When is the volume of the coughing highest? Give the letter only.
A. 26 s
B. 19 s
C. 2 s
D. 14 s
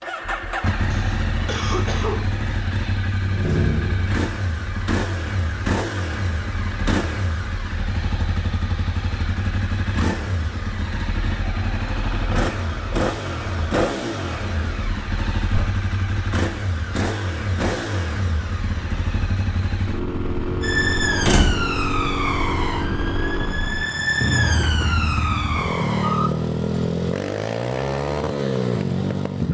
C.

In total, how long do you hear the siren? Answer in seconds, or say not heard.
6 s.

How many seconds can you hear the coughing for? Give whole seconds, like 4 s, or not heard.
2 s.